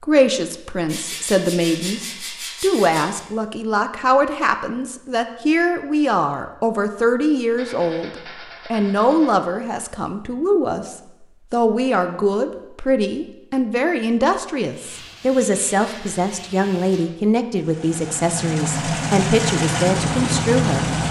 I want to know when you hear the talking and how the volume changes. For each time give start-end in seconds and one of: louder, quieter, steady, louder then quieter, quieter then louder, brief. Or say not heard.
0.0-20.9 steady.